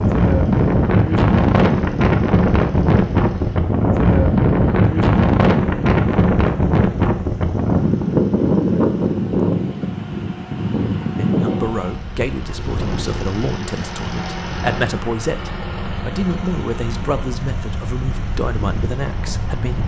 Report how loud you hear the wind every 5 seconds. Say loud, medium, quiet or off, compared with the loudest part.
loud, loud, medium, quiet.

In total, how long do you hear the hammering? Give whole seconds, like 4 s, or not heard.
not heard.